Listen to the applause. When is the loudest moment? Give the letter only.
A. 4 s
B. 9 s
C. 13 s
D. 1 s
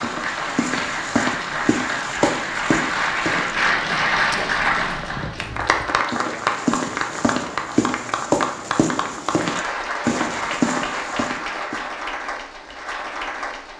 A.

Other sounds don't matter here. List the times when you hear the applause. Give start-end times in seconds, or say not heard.
0.0-13.7.